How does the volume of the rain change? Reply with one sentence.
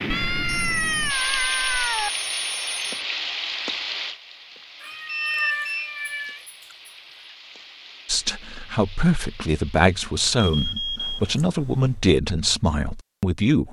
The loudness of the rain goes down.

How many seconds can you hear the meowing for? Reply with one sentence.
You can hear the meowing for 5 seconds altogether.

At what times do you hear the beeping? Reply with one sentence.
You can hear the beeping from 0.5 to 3.0 s, from 4.9 to 5.9 s and from 10.3 to 11.3 s.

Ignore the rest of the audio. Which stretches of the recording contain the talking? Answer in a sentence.
You can hear the talking from 8.1 to 13.6 s.